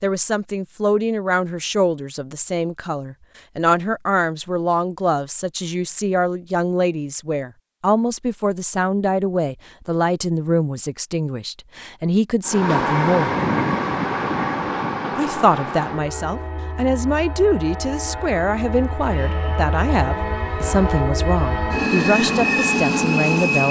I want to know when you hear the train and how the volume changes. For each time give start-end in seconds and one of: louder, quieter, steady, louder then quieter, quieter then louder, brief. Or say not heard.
12.4-23.6 quieter then louder.